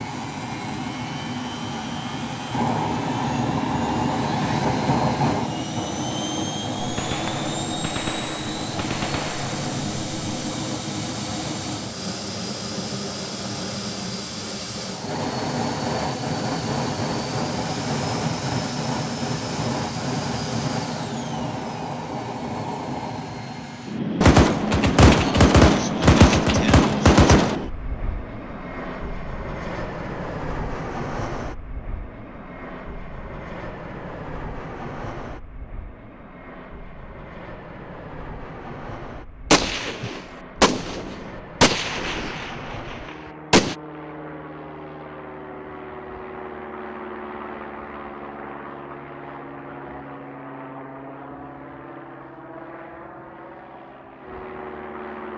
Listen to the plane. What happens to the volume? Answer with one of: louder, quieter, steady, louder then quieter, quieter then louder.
quieter.